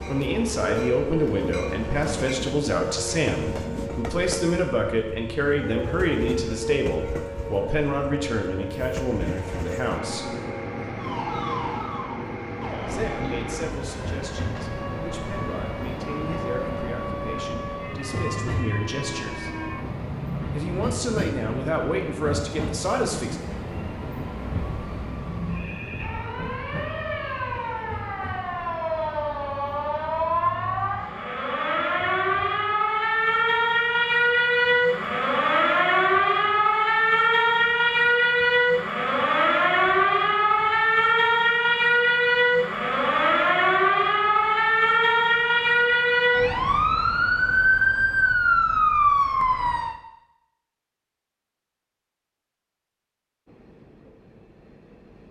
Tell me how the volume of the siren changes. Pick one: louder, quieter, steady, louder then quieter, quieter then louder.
louder.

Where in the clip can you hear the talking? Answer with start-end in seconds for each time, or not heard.
0.1-10.3, 12.8-19.5, 20.5-23.4.